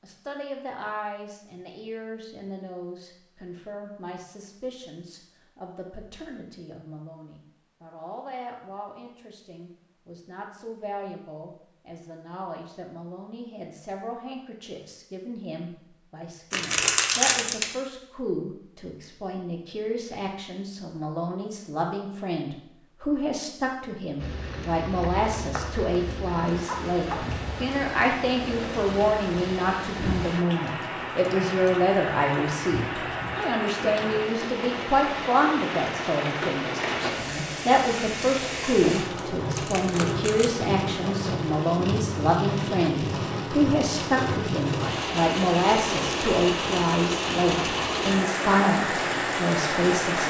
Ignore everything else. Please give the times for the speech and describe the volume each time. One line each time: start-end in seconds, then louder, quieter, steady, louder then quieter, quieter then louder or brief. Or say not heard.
0.0-50.2 louder.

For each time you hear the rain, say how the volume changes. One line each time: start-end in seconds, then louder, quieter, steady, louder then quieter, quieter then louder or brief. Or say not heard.
24.1-50.2 louder.